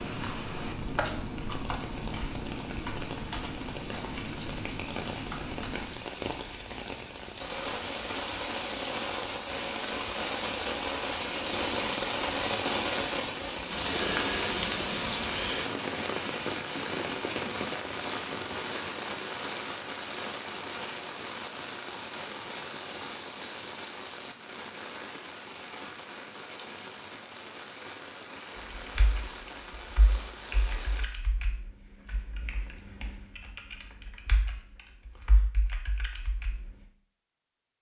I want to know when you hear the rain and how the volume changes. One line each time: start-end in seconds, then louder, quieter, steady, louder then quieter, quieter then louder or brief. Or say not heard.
0.0-31.1 louder then quieter.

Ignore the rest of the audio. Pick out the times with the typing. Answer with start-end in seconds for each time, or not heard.
0.0-6.0, 28.6-36.9.